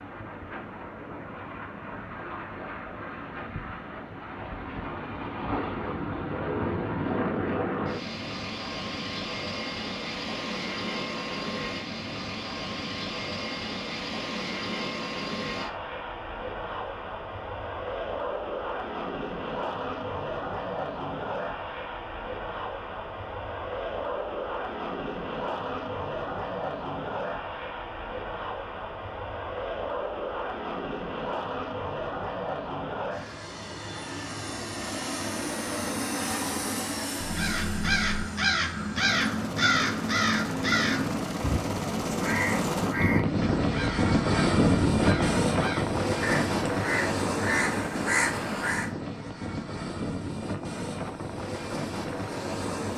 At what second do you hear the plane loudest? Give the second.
45 s.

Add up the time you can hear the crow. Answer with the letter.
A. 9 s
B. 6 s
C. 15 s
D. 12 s
D.